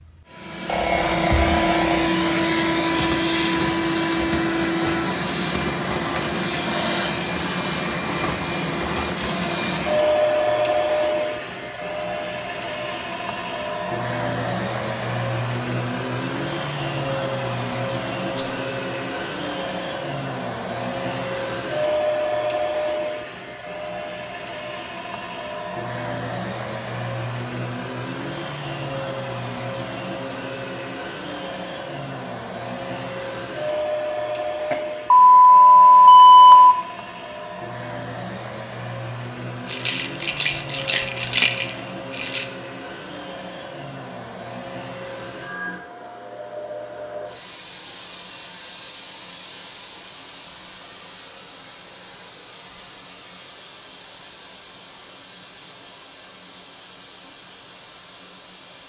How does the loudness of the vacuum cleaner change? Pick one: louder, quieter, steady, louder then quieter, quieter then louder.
quieter.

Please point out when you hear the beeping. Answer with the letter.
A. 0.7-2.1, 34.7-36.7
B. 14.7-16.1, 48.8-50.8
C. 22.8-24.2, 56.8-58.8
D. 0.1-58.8
A.